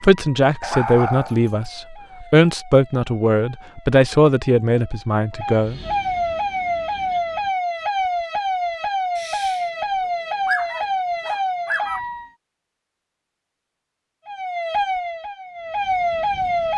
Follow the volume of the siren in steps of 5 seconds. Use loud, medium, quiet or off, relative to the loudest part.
quiet, loud, loud, loud.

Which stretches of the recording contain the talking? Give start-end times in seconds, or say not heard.
0.0-5.8.